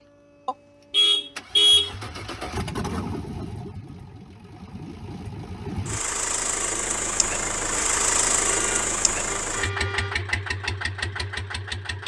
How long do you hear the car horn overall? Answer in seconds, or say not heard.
3 s.